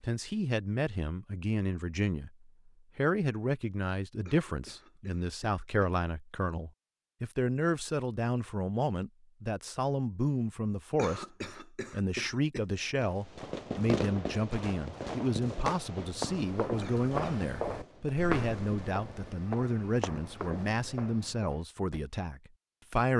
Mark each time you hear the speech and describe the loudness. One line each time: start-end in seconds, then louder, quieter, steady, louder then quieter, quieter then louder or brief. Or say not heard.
0.0-23.1 steady.